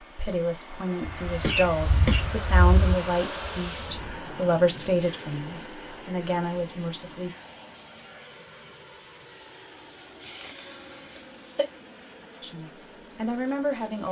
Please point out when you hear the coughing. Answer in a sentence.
The coughing can be heard from 1.4 to 2.2 s and from 10.2 to 11.7 s.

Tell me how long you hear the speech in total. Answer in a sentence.
The speech can be heard for 9 seconds in total.